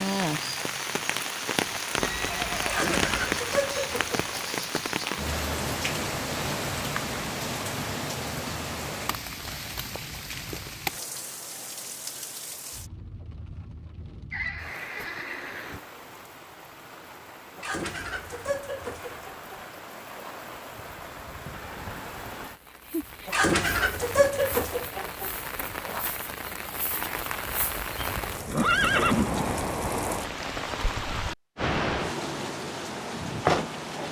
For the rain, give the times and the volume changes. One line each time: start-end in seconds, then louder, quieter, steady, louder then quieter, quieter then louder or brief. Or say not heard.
0.0-34.0 quieter then louder.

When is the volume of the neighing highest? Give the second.
29 s.